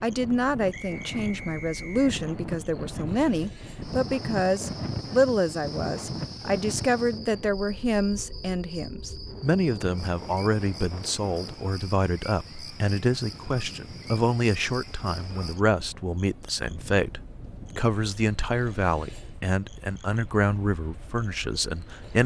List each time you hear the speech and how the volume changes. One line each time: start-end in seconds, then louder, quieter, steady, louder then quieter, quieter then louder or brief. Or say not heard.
0.0-22.2 steady.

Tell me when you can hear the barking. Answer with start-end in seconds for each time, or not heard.
not heard.